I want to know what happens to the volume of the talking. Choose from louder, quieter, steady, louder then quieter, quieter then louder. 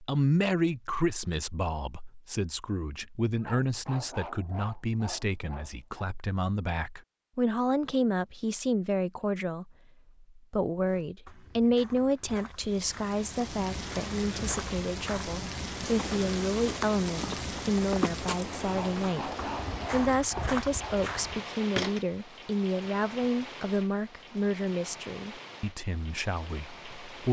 steady.